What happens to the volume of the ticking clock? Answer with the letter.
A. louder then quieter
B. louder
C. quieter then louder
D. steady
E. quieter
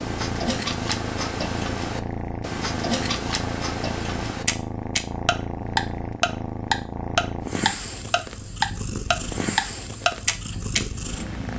B.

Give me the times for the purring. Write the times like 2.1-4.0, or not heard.
0.0-11.5.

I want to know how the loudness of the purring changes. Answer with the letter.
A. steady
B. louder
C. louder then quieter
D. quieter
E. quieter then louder
A.